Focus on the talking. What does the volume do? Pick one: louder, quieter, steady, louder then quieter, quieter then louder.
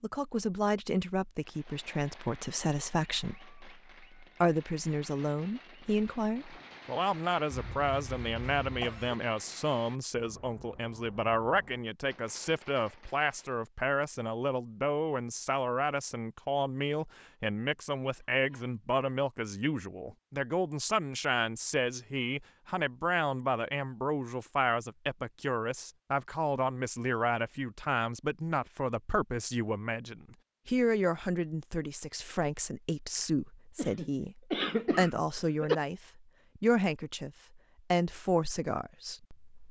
steady.